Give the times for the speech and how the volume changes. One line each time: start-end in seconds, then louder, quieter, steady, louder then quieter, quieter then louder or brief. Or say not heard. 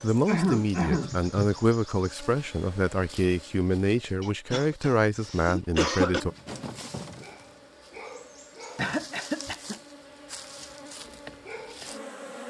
0.0-6.3 steady.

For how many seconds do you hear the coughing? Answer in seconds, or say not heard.
4 s.